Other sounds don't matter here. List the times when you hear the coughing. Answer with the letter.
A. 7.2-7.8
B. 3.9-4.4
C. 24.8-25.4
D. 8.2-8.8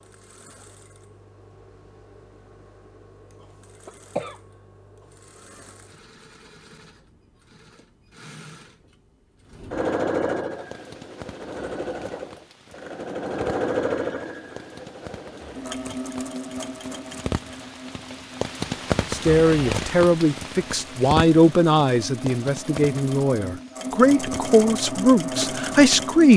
B.